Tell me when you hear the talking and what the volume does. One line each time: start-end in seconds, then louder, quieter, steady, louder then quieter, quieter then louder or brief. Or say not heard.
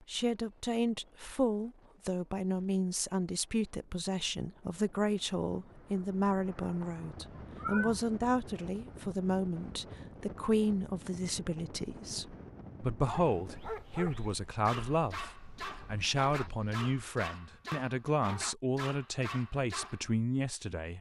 0.1-20.9 steady.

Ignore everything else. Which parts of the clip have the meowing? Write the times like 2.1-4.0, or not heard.
7.2-8.1.